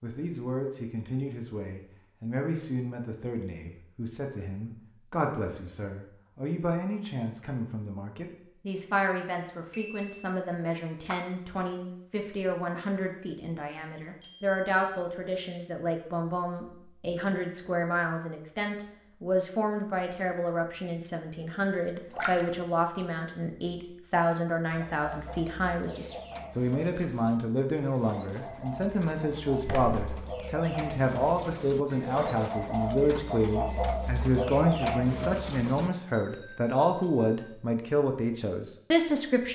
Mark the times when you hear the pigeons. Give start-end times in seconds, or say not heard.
24.7-35.9.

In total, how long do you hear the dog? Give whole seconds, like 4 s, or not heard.
not heard.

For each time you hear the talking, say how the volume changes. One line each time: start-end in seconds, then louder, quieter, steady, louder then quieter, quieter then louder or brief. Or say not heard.
0.0-39.5 louder.